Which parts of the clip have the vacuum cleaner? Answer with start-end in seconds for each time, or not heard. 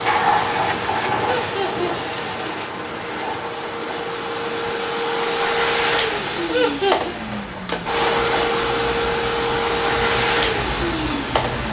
0.0-11.6.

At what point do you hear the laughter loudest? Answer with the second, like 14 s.
7 s.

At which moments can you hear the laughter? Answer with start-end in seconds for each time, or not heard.
1.2-2.1, 6.5-7.2.